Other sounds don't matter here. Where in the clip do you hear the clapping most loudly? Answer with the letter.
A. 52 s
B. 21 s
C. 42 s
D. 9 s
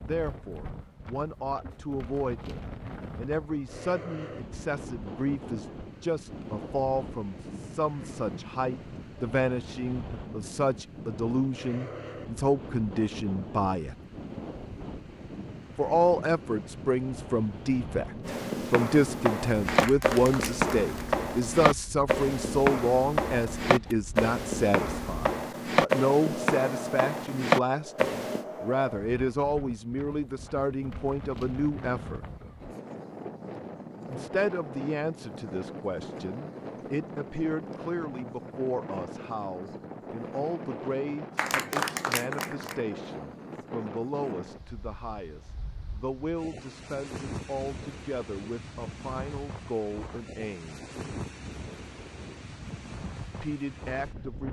C.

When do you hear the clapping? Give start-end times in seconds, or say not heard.
19.6-21.1, 41.4-42.9.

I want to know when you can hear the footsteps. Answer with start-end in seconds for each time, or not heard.
18.2-28.4.